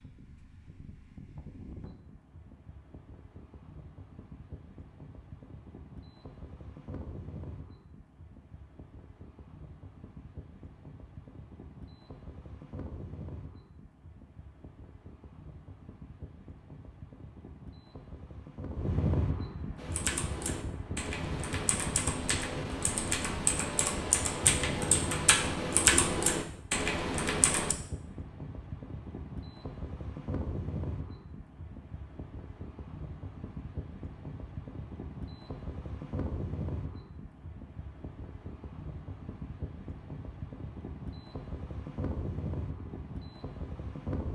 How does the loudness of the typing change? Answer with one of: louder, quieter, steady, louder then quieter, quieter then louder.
louder.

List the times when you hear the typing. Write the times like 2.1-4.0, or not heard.
19.8-27.8.